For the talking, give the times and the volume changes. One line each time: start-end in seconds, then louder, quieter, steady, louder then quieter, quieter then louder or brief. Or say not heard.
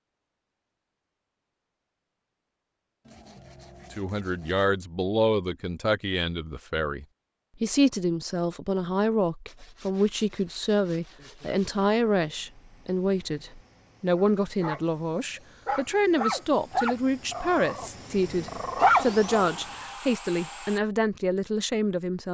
3.9-22.2 steady.